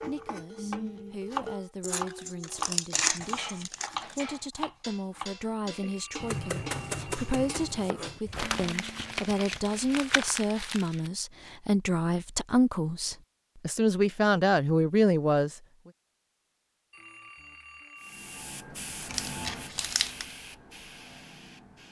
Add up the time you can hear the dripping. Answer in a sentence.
The dripping can't be heard in this clip.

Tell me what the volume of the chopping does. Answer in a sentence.
The loudness of the chopping stays about the same.